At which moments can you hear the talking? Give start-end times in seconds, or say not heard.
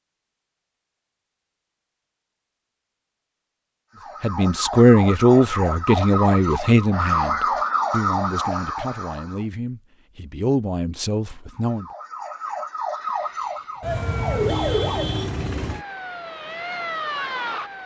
4.2-11.8.